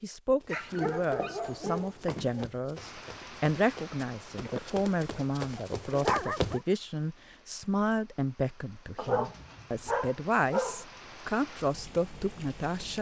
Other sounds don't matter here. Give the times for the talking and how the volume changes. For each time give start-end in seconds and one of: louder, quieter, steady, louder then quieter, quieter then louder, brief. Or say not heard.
0.0-12.9 steady.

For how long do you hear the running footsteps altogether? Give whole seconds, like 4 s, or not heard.
6 s.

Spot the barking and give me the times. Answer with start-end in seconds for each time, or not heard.
0.5-2.5, 4.3-6.6, 8.9-10.8.